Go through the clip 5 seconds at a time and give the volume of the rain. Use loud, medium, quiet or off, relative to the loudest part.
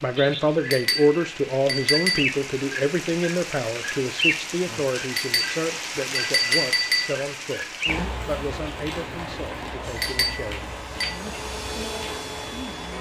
loud, loud, medium.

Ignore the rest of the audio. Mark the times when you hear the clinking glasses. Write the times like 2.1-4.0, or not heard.
0.7-2.2, 5.1-7.0, 9.9-11.2.